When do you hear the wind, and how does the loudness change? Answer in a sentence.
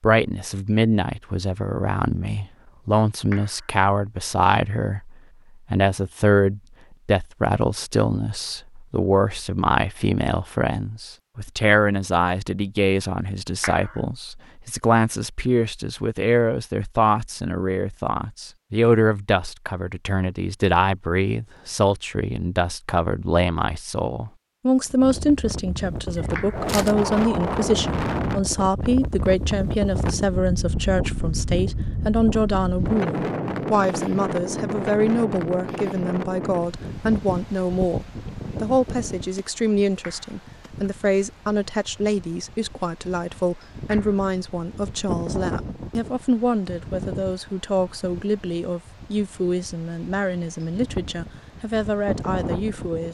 The wind can be heard from 24.9 to 53.0 s, getting quieter.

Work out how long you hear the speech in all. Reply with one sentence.
You can hear the speech for 53 seconds altogether.